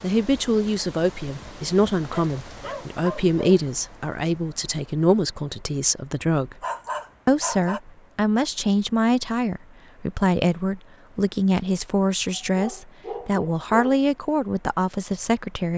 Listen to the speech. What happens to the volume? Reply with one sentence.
The loudness of the speech stays about the same.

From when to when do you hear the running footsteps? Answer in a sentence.
The running footsteps can't be heard in this clip.